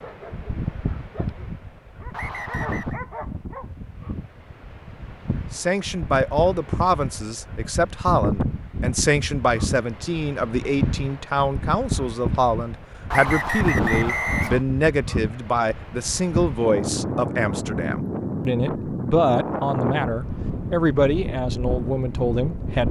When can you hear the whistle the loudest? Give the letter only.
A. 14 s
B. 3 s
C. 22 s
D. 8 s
A.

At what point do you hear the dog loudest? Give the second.
3 s.